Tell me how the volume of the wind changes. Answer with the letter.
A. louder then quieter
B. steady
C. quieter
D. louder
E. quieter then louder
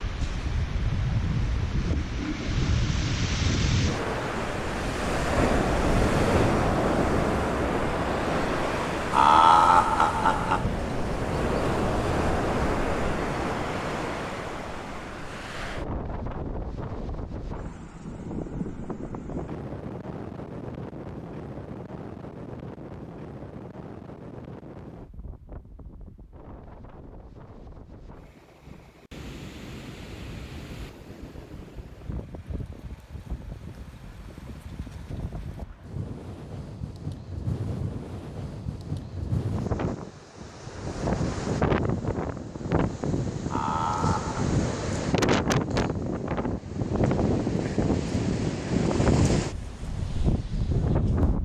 E.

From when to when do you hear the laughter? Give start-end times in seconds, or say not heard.
9.1-10.7, 43.5-44.5.